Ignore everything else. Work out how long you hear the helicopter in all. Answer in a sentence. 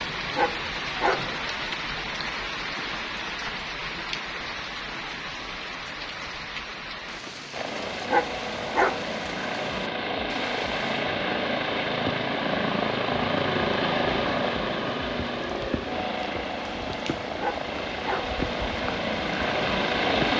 The helicopter can be heard for 13 seconds in total.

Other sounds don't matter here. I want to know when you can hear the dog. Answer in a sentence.
You can hear the dog from 0.3 to 1.4 s, from 8.1 to 9.1 s and from 17.4 to 18.4 s.